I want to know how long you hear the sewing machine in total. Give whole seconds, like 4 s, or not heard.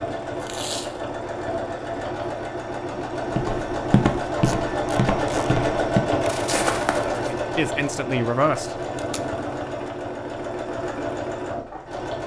12 s.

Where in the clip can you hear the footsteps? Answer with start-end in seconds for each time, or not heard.
3.4-7.3.